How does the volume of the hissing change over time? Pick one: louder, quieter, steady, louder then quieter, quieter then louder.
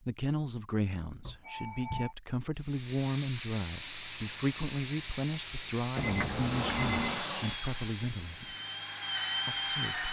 quieter.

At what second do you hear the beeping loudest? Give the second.
7 s.